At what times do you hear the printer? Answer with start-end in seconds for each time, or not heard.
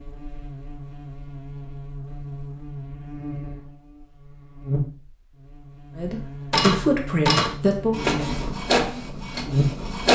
6.5-10.0.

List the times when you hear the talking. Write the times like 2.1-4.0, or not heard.
6.0-8.0.